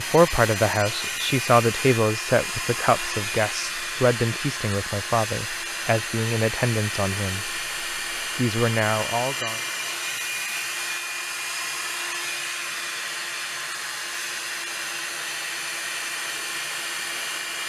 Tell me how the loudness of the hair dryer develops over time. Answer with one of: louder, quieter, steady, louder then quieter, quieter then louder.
steady.